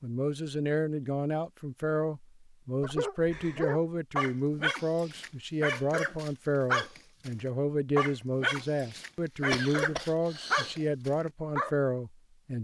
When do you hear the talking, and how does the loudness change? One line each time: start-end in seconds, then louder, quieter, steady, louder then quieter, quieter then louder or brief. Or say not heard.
0.0-12.6 steady.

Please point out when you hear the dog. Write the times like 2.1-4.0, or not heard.
2.8-7.3, 8.0-11.7.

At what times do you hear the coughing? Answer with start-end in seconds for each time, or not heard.
9.5-10.8.